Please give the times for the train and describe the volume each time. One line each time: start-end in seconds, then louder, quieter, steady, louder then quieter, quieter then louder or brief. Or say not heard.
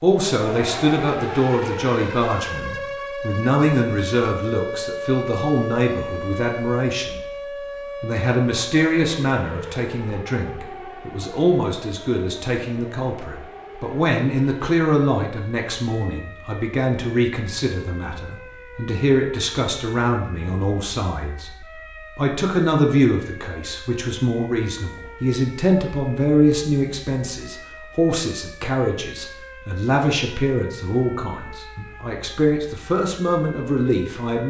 not heard.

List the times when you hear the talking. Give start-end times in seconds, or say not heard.
0.0-7.2, 8.0-34.4.